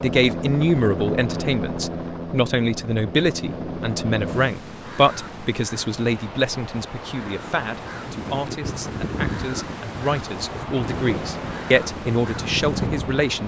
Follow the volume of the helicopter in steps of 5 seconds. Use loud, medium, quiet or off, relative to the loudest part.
loud, off, loud.